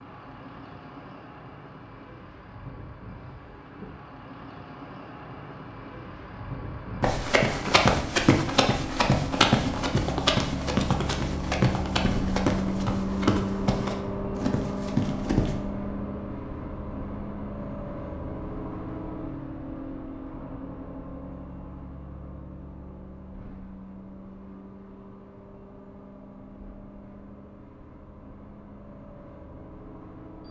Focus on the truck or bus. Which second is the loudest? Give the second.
13 s.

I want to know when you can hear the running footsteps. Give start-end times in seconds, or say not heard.
7.0-15.6.